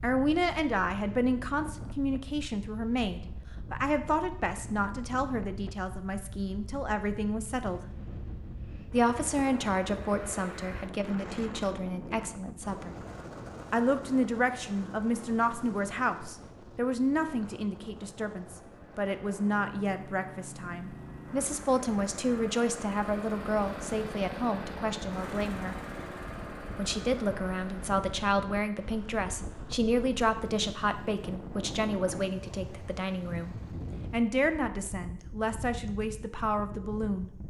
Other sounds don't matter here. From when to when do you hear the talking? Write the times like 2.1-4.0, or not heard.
0.0-7.8, 8.9-12.9, 13.7-25.8, 26.8-37.3.